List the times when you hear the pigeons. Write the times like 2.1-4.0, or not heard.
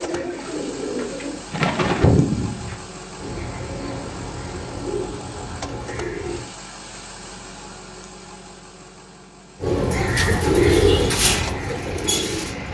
0.0-6.5, 9.6-12.6.